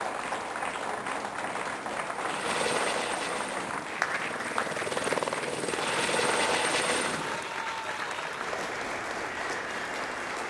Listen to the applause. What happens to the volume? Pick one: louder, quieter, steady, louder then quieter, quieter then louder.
steady.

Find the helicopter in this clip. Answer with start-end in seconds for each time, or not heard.
2.1-7.5.